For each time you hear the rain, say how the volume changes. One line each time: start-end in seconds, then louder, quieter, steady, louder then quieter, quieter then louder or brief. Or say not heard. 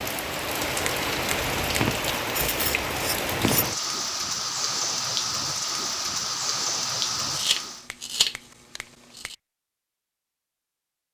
0.0-7.8 steady.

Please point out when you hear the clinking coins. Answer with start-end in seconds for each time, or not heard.
not heard.